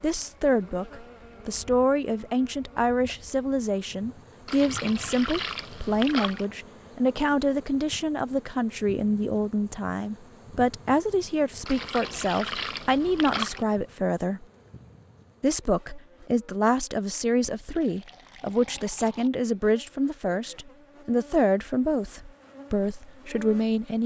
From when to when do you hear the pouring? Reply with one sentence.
You can hear the pouring from 4.5 to 6.5 s, from 11.7 to 13.7 s and from 17.6 to 19.3 s.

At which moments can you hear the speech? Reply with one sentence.
You can hear the speech from 0.0 to 14.4 s and from 15.4 to 24.0 s.